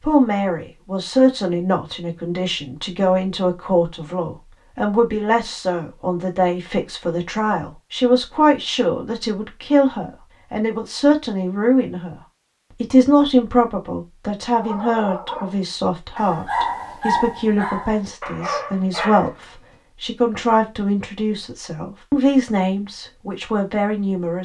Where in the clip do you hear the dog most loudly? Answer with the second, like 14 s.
17 s.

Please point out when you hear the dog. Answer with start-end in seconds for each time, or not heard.
14.5-19.4.